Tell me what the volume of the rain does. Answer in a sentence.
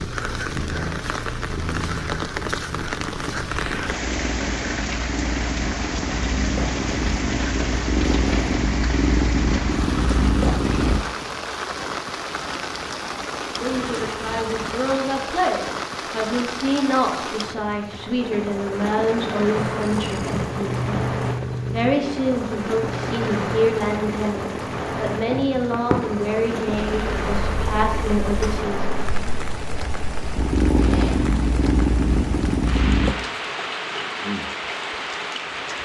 The volume of the rain stays about the same.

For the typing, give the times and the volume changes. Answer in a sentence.
You can't hear the typing here.